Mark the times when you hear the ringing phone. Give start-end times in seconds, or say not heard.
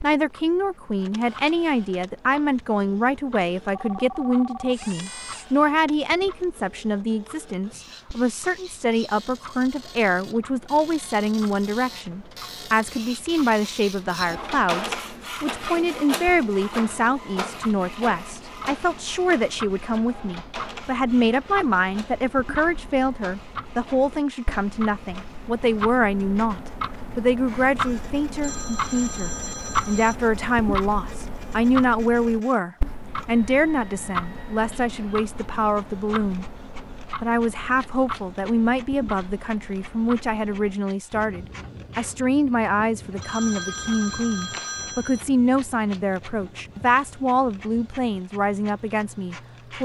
3.8-5.5, 28.4-30.1, 43.2-45.2.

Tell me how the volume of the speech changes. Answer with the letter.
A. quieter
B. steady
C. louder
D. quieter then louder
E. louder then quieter
B.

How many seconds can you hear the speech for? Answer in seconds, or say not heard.
49 s.